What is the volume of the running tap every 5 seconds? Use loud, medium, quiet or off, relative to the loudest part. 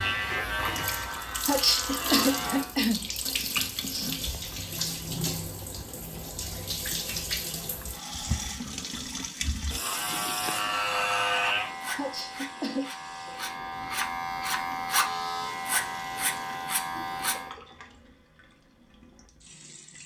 loud, loud, medium, quiet.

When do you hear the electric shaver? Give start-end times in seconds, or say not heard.
0.0-2.7, 9.8-17.5.